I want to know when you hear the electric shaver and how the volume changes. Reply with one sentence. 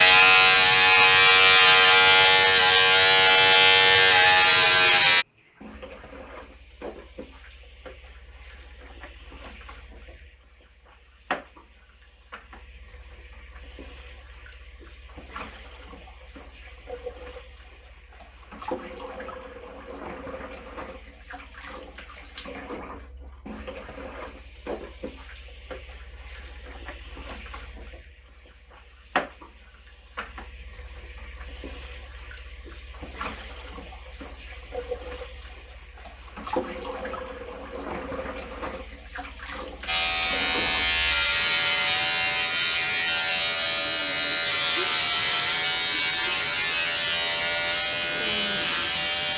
You can hear the electric shaver from 0.0 to 5.2 s, at a steady volume; and from 39.9 to 49.3 s, at a steady volume.